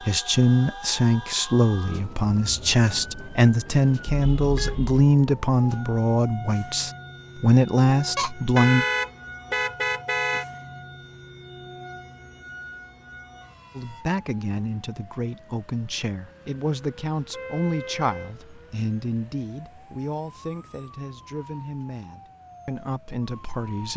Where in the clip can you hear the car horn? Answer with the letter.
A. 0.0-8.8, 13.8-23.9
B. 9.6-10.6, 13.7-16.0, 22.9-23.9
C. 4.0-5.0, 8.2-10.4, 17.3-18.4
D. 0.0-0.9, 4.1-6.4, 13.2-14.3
C.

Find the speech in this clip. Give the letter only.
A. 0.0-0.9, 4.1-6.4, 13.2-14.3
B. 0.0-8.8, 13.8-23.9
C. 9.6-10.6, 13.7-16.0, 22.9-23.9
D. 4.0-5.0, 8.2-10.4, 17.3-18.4
B.